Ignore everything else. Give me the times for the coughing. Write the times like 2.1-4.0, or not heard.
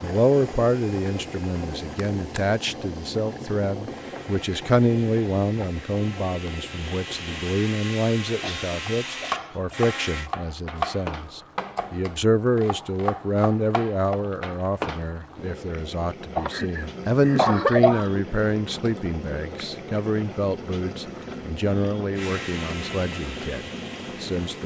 8.4-9.8, 16.4-18.2.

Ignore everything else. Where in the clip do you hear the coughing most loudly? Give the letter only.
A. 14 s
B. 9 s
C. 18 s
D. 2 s
C.